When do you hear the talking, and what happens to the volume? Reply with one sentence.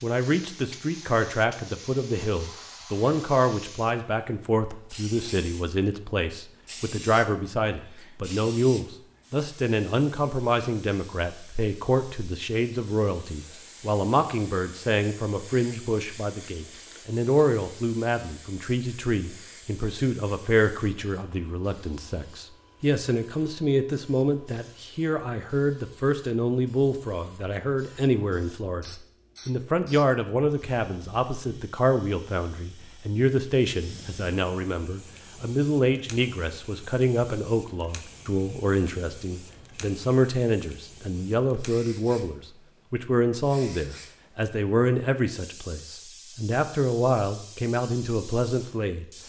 You can hear the talking from 0.0 to 49.0 s, at a steady volume.